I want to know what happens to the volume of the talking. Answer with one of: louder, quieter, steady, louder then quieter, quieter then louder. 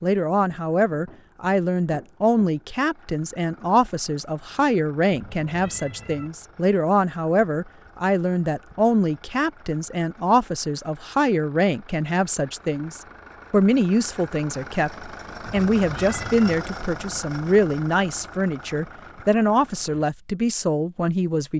steady.